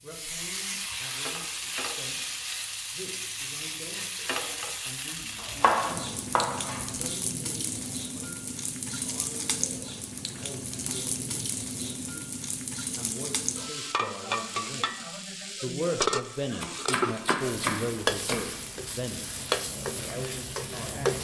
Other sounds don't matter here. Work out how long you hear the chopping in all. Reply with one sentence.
The chopping can be heard for 3 seconds in total.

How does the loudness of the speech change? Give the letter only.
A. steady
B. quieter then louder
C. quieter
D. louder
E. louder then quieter
D.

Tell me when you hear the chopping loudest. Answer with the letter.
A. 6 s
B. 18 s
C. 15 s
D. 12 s
A.